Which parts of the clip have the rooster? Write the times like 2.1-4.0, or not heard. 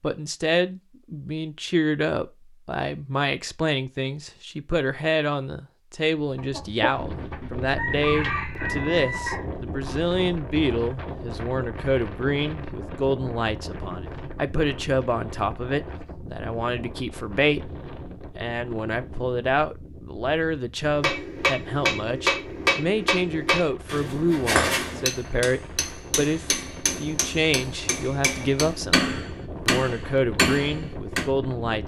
6.3-9.9.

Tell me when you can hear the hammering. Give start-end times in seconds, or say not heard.
21.0-31.3.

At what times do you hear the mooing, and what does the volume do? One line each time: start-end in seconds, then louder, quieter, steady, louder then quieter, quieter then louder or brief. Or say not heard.
not heard.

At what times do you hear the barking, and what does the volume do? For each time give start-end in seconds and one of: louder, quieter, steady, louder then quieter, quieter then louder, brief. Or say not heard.
not heard.